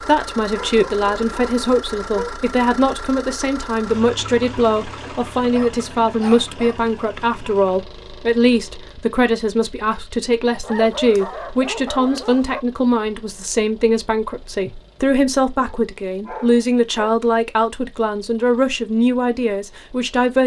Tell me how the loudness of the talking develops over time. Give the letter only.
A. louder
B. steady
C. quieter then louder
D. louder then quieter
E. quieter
B.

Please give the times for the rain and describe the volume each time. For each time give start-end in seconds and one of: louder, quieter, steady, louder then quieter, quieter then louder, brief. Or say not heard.
not heard.